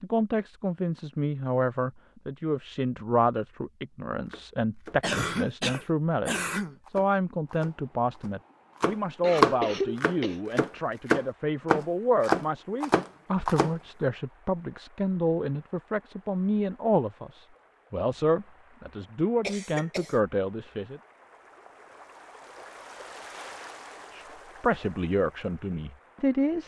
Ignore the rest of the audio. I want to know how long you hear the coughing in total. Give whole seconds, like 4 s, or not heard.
4 s.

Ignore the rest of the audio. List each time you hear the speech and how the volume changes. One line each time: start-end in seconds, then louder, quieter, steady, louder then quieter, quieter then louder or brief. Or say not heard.
0.0-21.0 steady
24.1-26.6 brief.